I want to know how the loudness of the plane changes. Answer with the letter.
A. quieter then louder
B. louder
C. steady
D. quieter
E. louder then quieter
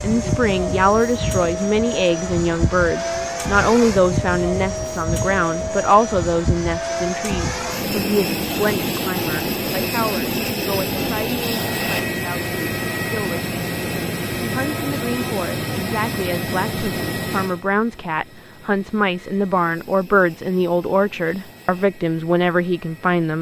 D.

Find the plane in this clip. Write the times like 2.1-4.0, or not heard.
0.0-23.3.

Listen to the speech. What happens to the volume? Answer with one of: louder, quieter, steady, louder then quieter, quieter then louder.
quieter then louder.